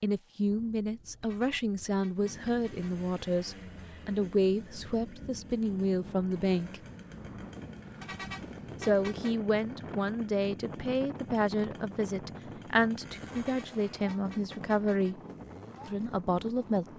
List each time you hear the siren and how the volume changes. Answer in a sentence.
The siren can't be heard in this clip.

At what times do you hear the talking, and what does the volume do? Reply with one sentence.
The talking can be heard from 0.0 to 6.8 s, at a steady volume; from 8.8 to 15.2 s, at a steady volume; and briefly from 15.8 to 16.9 s.